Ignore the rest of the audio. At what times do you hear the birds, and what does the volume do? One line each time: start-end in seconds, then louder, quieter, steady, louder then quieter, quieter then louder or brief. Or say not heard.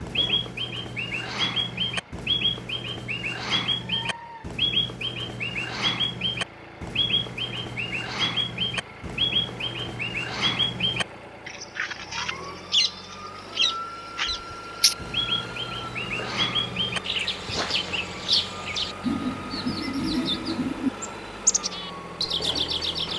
0.0-23.1 steady.